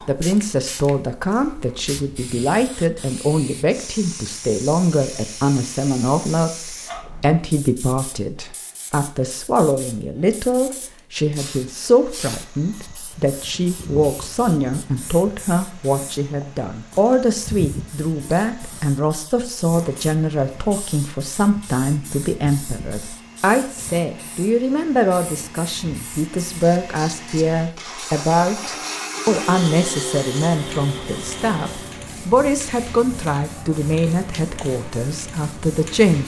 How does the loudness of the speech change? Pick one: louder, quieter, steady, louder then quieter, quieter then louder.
steady.